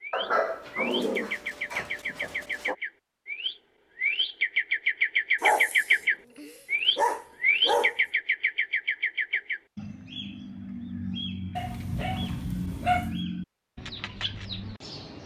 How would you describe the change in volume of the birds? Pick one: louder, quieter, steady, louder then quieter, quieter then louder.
louder then quieter.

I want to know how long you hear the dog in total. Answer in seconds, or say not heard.
7 s.